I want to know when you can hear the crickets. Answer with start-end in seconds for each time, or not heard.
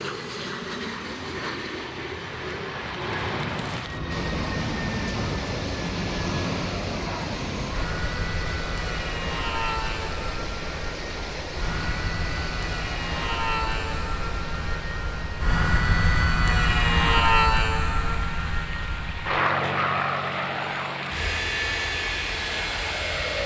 not heard.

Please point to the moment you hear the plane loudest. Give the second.
17 s.